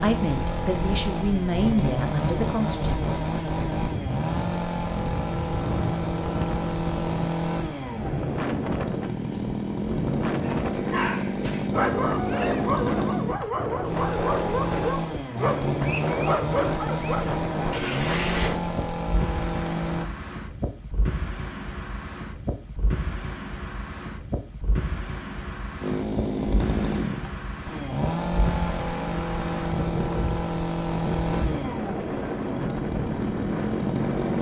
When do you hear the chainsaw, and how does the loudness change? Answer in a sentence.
You can hear the chainsaw from 0.0 to 20.1 s, at a steady volume; and from 25.8 to 34.3 s, at a steady volume.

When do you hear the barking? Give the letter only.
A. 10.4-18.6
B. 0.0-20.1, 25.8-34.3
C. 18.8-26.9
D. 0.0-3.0
A.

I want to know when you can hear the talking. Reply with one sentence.
You can hear the talking from 0.0 to 3.0 s.